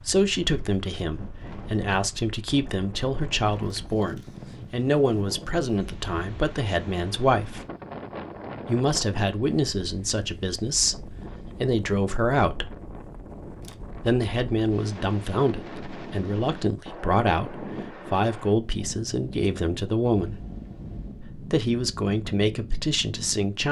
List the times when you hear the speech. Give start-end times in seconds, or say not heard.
0.1-7.7, 8.7-12.7, 14.1-20.4, 21.2-23.6.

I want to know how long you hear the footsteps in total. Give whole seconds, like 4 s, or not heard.
not heard.